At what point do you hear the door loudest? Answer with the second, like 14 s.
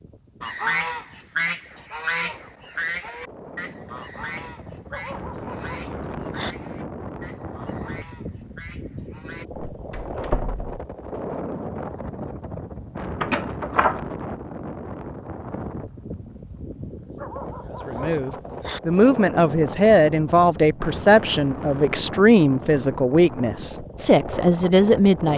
14 s.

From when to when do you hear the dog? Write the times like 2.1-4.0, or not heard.
4.9-6.5, 17.1-18.8.